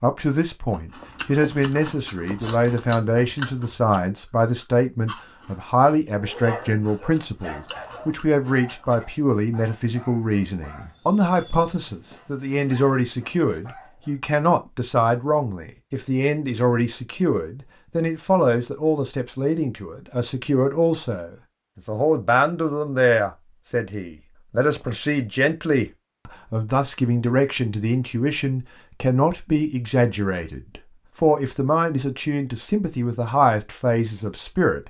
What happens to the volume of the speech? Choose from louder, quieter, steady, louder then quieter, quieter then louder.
steady.